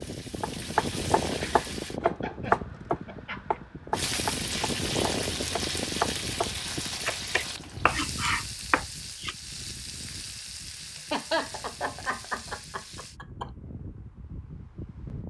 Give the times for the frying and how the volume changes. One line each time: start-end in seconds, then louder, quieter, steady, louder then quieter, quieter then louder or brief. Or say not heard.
0.0-2.0 brief
3.9-13.2 quieter.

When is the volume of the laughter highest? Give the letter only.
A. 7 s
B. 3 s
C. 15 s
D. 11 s
D.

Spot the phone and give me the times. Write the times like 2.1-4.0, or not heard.
not heard.